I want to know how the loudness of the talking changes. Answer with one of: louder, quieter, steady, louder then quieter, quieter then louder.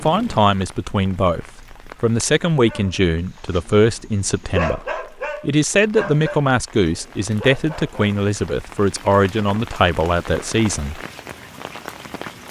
steady.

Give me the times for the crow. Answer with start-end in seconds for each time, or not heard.
not heard.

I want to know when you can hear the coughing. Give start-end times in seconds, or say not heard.
not heard.